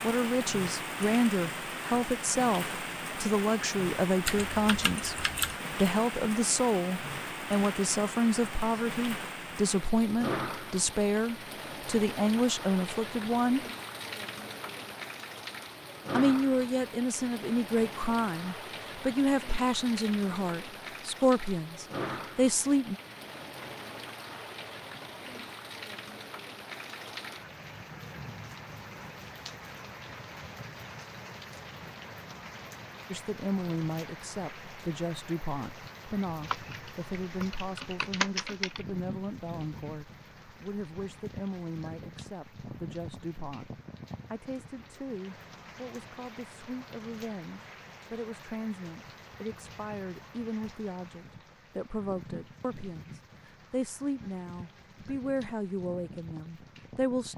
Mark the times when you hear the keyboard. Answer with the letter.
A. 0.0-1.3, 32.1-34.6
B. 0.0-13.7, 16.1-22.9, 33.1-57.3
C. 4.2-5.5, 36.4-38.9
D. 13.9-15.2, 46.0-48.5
C.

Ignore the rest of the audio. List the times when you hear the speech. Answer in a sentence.
The speech can be heard from 0.0 to 13.7 s, from 16.1 to 22.9 s and from 33.1 to 57.3 s.